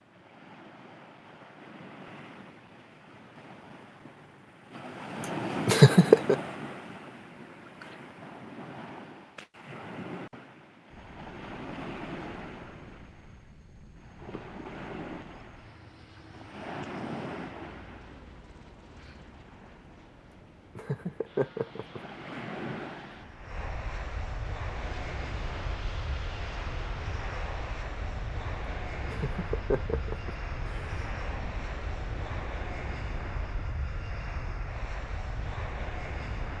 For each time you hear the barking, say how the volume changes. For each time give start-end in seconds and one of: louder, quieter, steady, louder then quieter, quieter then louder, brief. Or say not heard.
not heard.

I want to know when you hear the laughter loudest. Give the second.
6 s.